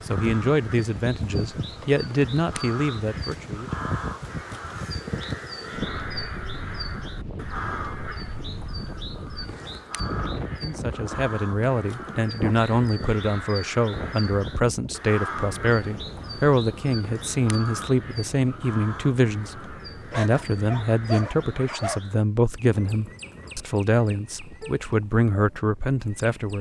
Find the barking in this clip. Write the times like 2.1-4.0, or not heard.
20.1-22.0.